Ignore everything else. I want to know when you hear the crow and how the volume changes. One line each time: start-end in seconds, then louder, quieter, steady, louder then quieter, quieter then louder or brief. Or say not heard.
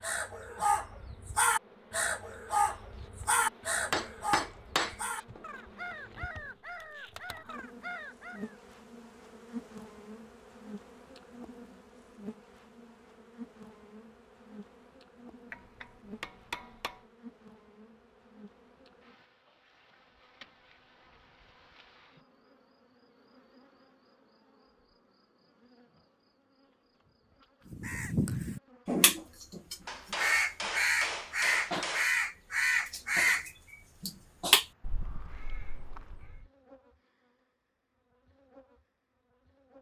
0.0-8.6 quieter
27.7-36.5 steady.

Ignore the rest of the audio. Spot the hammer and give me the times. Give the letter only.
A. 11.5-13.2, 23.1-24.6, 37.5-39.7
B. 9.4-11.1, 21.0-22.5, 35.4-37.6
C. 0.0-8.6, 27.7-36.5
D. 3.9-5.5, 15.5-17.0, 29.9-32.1
D.